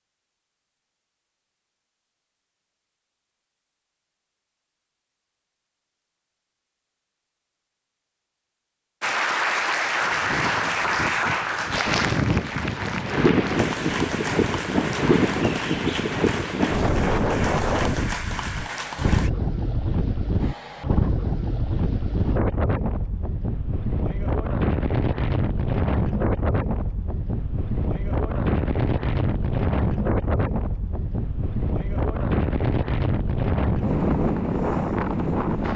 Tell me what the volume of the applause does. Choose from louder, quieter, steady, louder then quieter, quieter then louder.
quieter.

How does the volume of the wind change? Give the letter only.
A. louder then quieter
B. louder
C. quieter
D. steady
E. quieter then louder
D.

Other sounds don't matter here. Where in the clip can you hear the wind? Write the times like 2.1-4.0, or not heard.
10.0-35.7.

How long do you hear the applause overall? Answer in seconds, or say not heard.
10 s.